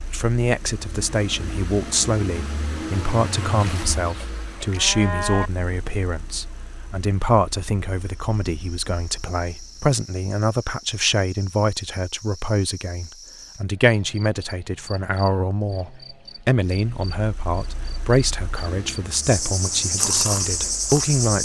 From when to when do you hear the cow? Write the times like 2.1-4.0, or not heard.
3.5-5.5.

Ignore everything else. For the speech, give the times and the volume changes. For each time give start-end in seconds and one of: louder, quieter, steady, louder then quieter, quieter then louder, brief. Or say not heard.
0.1-21.3 steady.